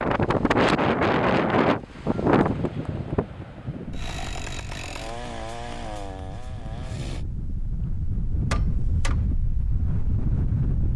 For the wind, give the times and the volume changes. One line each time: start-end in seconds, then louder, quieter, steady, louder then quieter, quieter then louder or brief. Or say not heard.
0.0-10.9 quieter then louder.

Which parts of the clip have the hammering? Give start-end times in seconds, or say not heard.
8.5-9.2.